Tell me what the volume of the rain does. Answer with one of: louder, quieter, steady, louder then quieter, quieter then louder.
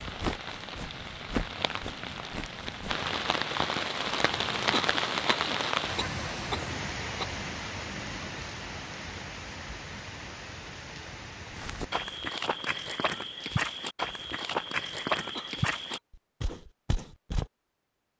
louder then quieter.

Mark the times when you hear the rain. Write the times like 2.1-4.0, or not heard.
0.0-12.1.